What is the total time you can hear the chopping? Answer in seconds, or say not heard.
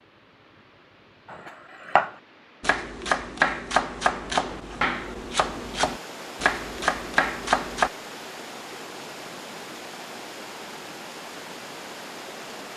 7 s.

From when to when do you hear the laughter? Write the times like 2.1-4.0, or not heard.
not heard.